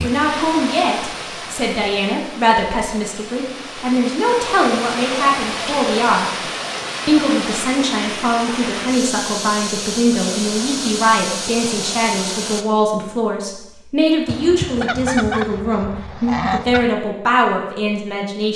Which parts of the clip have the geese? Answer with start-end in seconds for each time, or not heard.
14.2-16.9.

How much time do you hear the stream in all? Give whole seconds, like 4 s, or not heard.
13 s.